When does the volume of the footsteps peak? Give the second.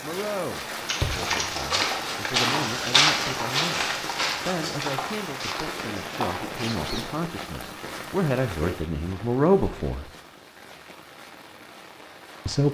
3 s.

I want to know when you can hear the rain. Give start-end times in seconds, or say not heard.
0.0-12.6.